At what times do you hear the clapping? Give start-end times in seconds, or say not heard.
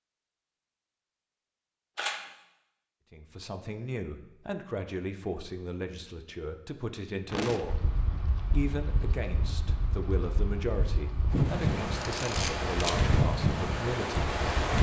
not heard.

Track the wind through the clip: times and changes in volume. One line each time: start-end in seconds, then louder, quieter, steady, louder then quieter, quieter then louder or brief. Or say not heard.
7.3-14.7 louder.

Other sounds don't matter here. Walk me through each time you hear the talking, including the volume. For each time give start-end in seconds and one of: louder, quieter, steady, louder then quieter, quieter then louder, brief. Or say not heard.
3.1-14.3 steady.